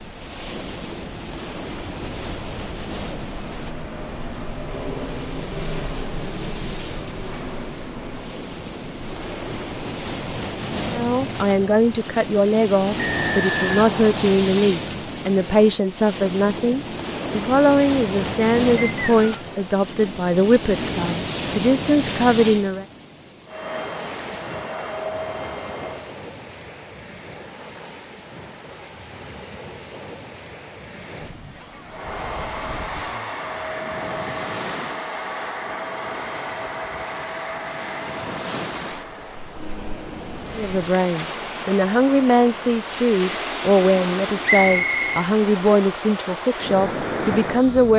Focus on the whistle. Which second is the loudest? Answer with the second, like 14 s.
45 s.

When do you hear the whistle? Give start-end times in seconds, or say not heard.
12.9-14.3, 18.8-19.2, 44.4-45.2.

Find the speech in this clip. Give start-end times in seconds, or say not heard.
10.9-22.9, 40.5-47.9.